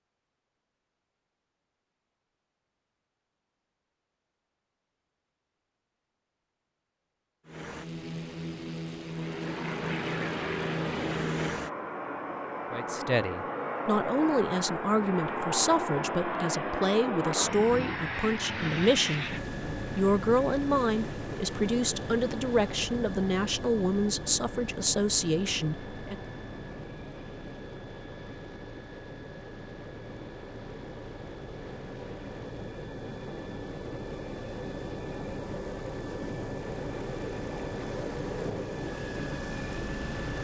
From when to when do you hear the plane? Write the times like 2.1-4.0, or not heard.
7.5-40.3.